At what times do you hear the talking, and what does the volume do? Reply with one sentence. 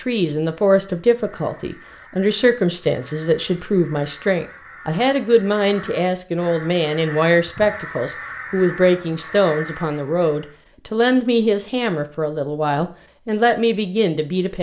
The talking can be heard from 0.0 to 14.5 s, at a steady volume.